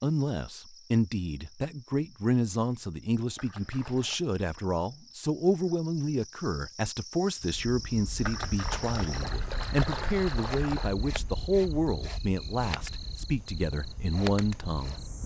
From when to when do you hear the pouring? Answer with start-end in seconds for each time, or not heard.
3.4-4.2, 8.2-10.9.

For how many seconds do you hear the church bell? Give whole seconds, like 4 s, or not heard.
not heard.